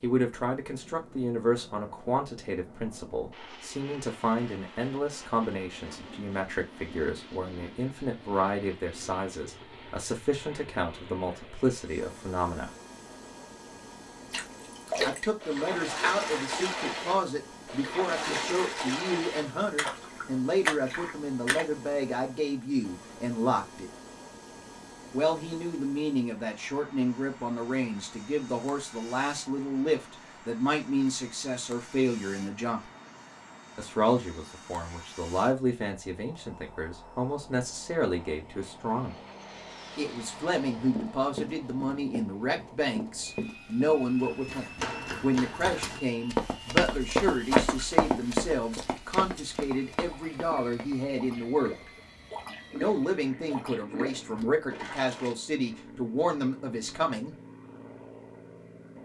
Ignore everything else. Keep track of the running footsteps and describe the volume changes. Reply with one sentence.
The loudness of the running footsteps goes up, then down.